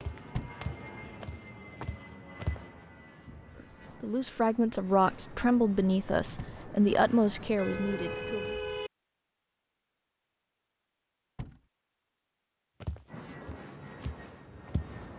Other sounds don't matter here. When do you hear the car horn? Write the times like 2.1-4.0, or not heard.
7.0-8.9.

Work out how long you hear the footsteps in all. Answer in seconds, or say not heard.
5 s.